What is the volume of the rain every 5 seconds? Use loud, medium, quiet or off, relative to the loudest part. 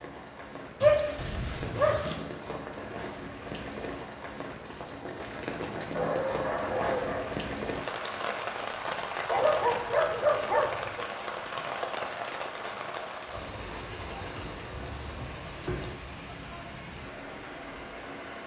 medium, loud, loud, medium.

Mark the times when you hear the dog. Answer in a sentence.
The dog can be heard from 0.8 to 2.2 s, from 5.9 to 7.3 s, from 9.3 to 11.1 s and from 14.3 to 15.8 s.